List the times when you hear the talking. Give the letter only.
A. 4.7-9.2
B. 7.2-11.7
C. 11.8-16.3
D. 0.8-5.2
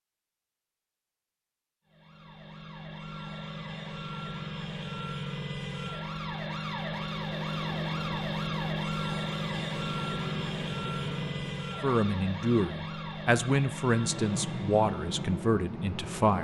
C.